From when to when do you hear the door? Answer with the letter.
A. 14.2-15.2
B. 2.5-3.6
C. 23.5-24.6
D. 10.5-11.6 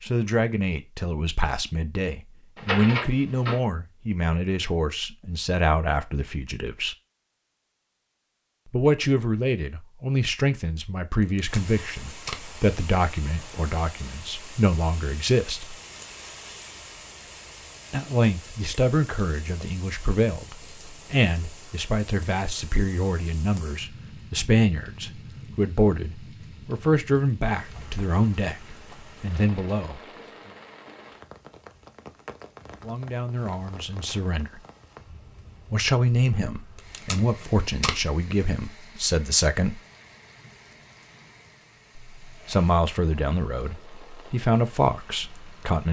B.